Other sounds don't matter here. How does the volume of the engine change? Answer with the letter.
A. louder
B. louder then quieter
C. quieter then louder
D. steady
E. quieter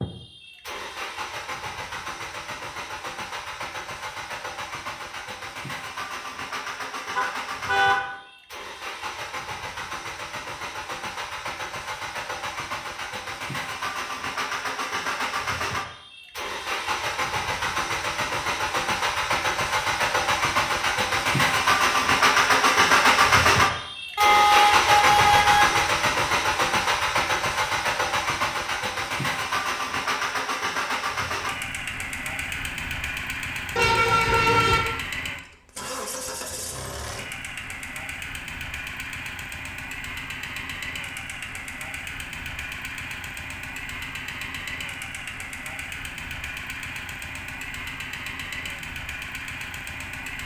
B.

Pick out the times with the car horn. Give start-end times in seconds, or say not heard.
7.2-8.1, 24.1-25.9, 33.8-34.8.